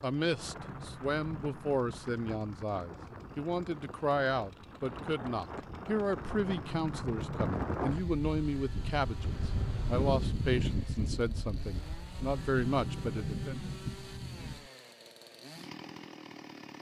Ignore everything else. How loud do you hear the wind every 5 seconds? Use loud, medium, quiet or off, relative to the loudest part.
medium, loud, loud, off.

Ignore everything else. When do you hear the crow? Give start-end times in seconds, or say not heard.
not heard.